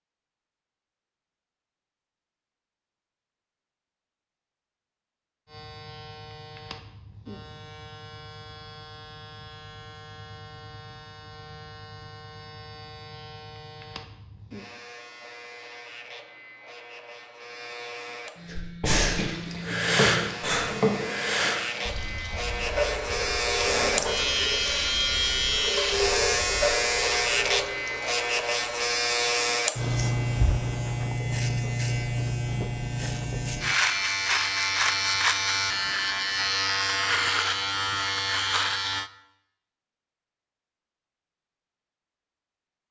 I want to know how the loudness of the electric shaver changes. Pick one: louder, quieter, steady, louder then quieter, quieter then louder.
louder.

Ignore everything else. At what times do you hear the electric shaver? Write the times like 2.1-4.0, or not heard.
5.5-39.1.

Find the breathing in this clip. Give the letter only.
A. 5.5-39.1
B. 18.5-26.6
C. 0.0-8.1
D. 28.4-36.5
B.